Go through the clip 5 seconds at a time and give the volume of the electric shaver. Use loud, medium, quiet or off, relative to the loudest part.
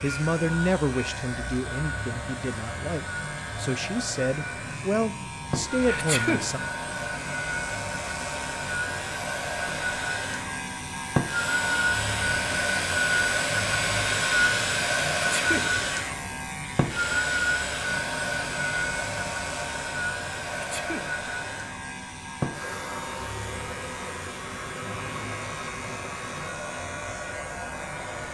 medium, loud, loud, loud, medium, medium.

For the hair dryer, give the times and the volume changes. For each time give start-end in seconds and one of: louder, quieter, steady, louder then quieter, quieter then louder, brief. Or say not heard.
0.0-28.2 louder then quieter.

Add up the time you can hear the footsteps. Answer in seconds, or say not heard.
not heard.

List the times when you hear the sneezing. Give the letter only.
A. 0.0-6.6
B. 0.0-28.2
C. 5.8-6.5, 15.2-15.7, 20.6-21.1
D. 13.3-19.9
C.